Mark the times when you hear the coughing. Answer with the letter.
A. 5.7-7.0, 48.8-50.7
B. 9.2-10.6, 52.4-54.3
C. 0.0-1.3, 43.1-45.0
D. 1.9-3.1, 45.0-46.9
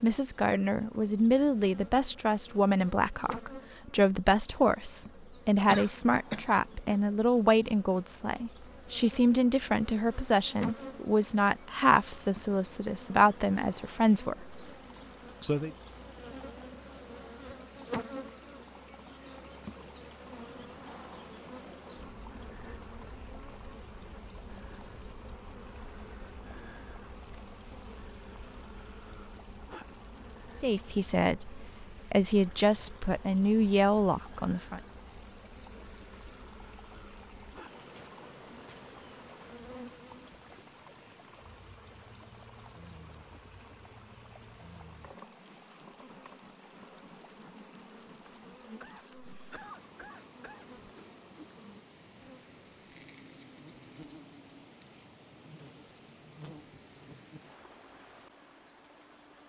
A.